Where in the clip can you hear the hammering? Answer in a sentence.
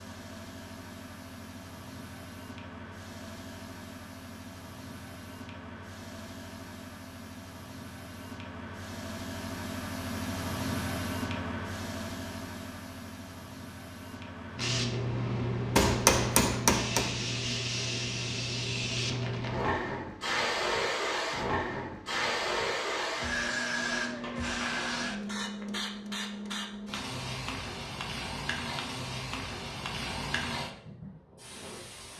The hammering can be heard from 15.8 to 17.1 s.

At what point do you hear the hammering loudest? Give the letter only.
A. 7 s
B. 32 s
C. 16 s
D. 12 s
C.